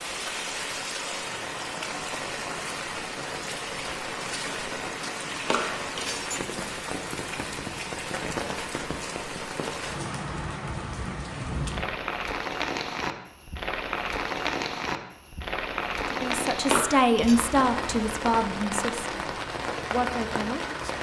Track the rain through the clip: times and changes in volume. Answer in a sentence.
The rain can be heard from 0.0 to 20.9 s, at a steady volume.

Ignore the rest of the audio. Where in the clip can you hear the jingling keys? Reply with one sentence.
The jingling keys can be heard from 5.5 to 6.5 s and from 16.7 to 17.4 s.